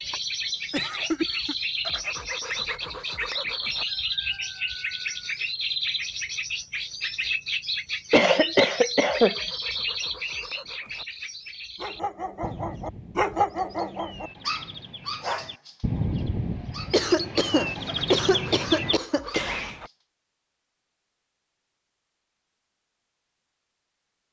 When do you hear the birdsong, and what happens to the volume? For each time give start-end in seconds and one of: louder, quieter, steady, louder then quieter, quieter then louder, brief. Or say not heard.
0.0-19.8 quieter then louder.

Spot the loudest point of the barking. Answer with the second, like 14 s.
13 s.